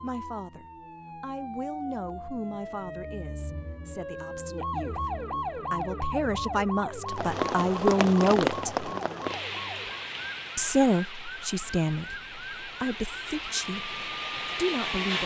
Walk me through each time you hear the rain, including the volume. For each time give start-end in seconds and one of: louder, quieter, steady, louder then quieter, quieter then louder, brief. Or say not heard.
7.1-15.2 quieter then louder.